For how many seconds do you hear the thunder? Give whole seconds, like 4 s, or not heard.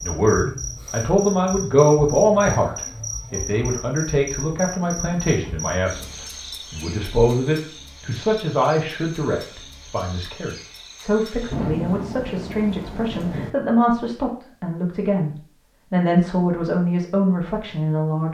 2 s.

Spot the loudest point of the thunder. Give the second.
12 s.